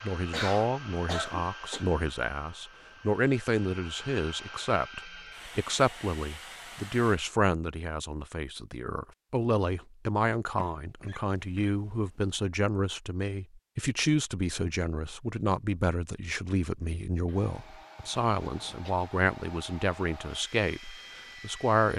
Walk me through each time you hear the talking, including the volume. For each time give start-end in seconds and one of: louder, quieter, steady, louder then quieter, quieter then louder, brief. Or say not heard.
0.0-21.9 steady.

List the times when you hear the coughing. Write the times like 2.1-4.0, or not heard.
0.3-1.9, 10.6-12.0, 17.2-18.9.